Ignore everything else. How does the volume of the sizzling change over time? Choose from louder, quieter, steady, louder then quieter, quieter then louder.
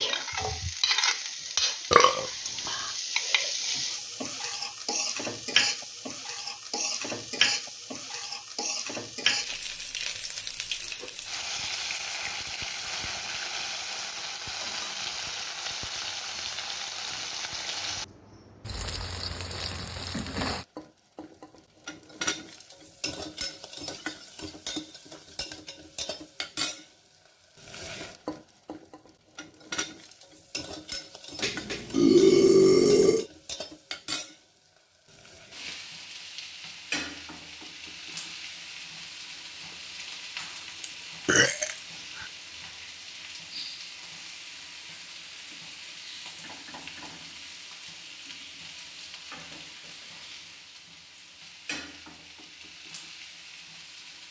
quieter.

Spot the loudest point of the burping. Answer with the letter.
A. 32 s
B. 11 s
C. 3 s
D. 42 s
A.